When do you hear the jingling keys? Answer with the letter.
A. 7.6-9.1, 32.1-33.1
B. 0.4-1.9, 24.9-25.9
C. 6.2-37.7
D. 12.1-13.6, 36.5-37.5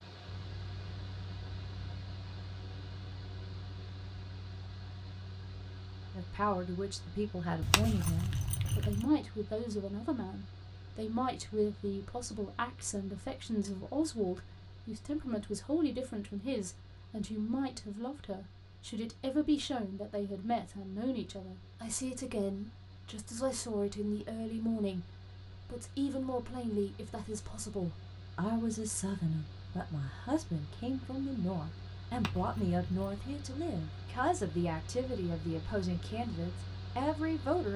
A.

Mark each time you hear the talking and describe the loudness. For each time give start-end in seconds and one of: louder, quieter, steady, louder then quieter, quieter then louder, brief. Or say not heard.
6.2-37.7 steady.